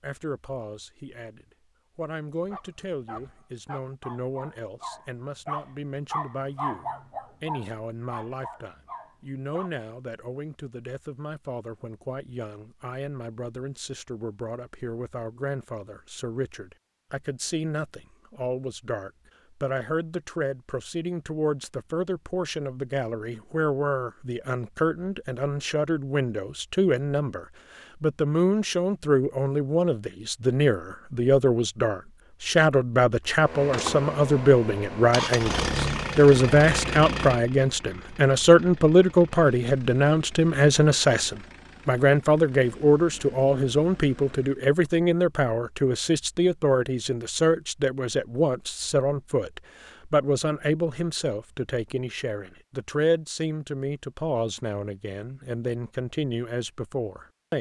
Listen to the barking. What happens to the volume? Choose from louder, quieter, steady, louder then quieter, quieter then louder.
louder then quieter.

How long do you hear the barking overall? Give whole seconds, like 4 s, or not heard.
7 s.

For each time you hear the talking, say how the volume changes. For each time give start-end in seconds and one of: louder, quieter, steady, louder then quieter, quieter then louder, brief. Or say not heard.
0.0-57.5 louder then quieter.